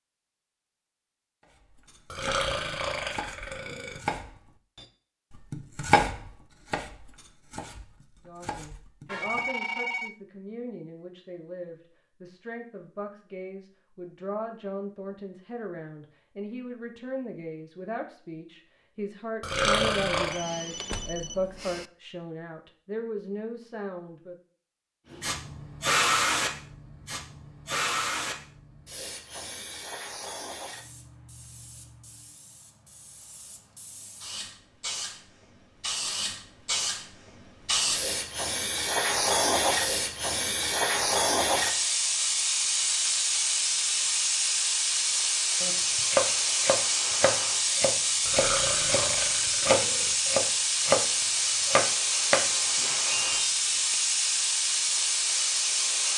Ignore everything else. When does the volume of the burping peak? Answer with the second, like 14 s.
20 s.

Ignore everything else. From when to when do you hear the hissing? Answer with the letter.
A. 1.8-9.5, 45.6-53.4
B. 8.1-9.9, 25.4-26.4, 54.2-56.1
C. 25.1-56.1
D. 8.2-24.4
C.